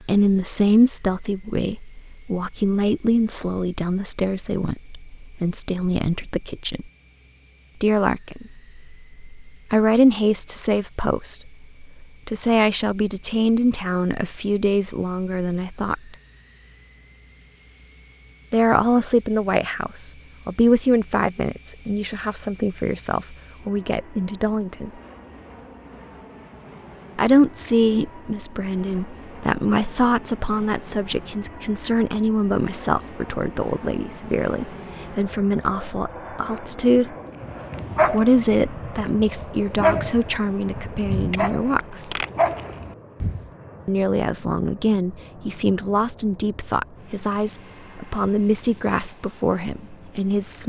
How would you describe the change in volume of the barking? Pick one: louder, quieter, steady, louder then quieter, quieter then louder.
quieter then louder.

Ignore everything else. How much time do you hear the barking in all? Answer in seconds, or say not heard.
6 s.